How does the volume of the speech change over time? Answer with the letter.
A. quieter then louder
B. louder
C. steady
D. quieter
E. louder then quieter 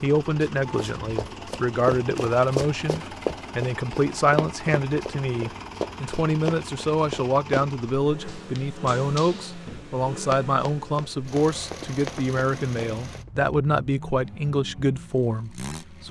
C.